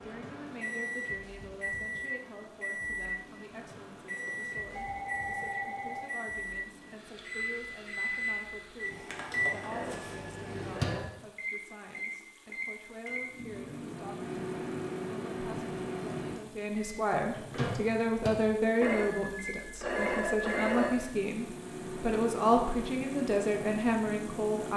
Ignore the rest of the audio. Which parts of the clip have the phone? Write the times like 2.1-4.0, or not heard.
4.2-6.1, 9.7-11.1, 18.8-21.1.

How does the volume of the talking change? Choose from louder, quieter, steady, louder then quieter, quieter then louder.
louder.